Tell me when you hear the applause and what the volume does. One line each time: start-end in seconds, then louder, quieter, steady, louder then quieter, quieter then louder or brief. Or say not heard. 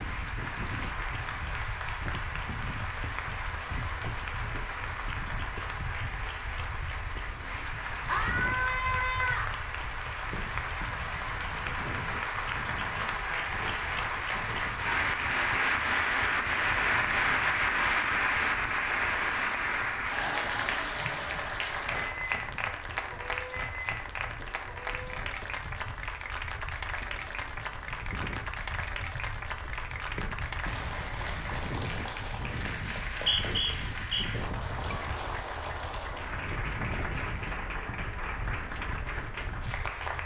0.0-40.2 louder then quieter.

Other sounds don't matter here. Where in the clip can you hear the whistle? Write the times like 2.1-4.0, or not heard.
33.0-34.2.